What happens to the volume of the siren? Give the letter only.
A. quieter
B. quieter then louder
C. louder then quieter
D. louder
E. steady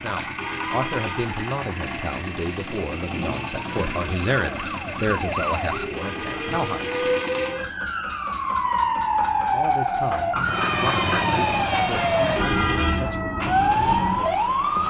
D.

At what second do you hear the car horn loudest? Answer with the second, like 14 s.
13 s.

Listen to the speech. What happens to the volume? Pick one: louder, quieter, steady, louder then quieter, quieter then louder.
quieter.